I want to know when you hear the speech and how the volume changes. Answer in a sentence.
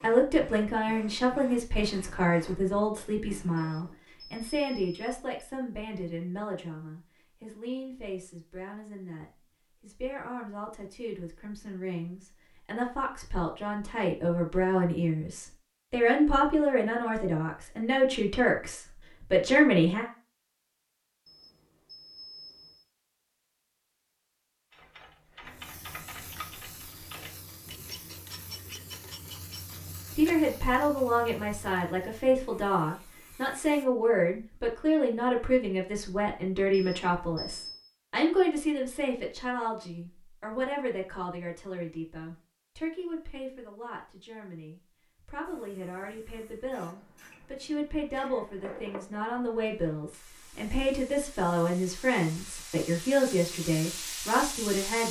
You can hear the speech from 0.0 to 20.1 s, getting quieter then louder; and from 30.1 to 55.0 s, getting quieter then louder.